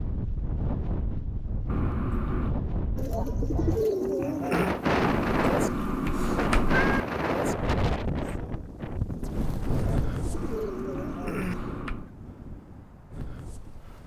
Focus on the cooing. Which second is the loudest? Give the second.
4 s.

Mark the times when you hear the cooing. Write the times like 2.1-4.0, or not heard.
3.0-4.8, 9.8-11.6.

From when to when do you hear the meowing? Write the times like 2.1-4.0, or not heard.
1.6-2.5, 5.0-7.0, 10.3-12.1.